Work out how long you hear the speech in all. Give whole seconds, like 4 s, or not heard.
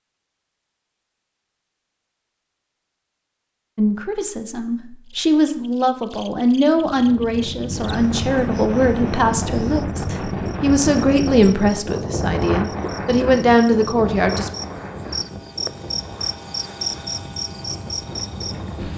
11 s.